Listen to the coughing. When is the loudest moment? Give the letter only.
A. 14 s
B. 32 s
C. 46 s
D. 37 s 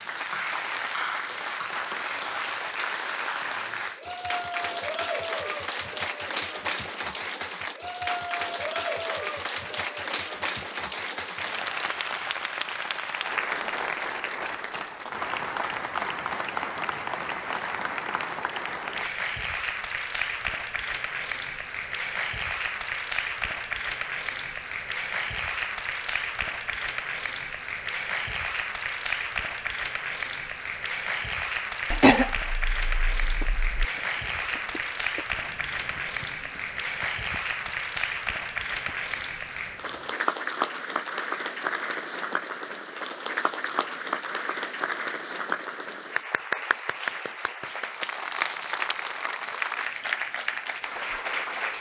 B.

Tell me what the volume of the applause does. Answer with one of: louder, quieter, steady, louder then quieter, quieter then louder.
steady.